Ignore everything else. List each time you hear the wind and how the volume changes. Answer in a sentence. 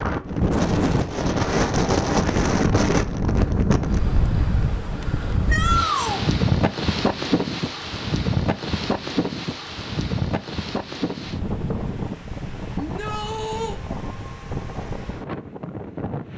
You can hear the wind from 0.0 to 16.3 s, getting quieter.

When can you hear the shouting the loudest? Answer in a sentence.
The loudest moment of the shouting is at 6 seconds.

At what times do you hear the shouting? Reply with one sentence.
The shouting can be heard from 5.5 to 6.2 s and from 12.8 to 13.8 s.